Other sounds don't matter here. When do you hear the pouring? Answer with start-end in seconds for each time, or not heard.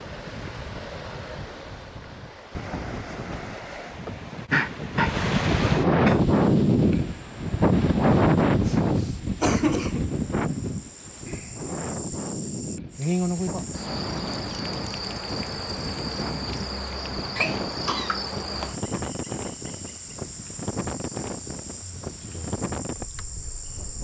not heard.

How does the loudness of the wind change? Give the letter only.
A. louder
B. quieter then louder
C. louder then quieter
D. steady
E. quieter
C.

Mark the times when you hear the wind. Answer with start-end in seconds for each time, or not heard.
0.0-23.9.